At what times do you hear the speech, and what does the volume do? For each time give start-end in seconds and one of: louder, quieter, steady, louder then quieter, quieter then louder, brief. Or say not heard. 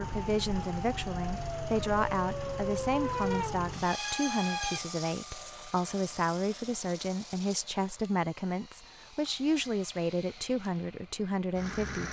0.0-12.0 steady.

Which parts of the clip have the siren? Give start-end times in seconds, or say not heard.
0.0-4.8.